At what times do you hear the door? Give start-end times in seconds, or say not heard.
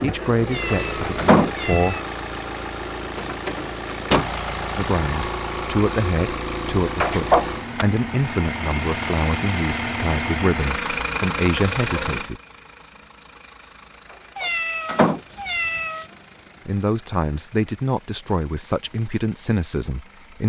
0.7-1.5, 7.0-7.8, 14.4-15.2.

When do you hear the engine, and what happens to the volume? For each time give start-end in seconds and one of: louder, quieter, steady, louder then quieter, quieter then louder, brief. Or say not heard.
0.0-20.4 quieter.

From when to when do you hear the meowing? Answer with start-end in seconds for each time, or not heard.
0.5-2.0, 14.3-16.1.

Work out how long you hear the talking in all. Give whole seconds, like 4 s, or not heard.
13 s.